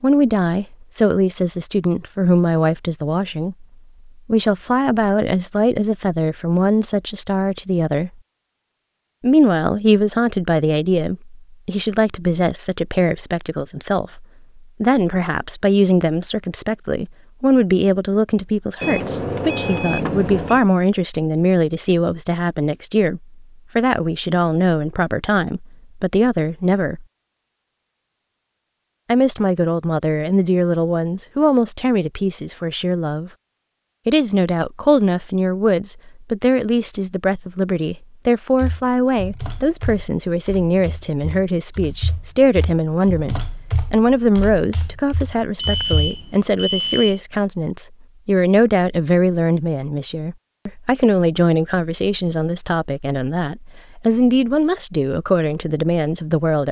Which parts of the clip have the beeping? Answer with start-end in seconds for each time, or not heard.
18.8-20.6, 45.5-47.2.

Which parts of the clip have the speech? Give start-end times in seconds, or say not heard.
0.0-8.1, 9.2-27.1, 29.1-33.3, 34.0-56.6.